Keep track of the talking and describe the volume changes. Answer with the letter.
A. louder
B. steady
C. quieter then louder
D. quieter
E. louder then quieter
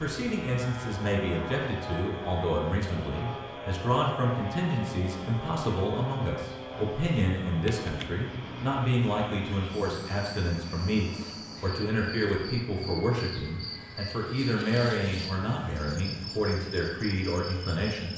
B.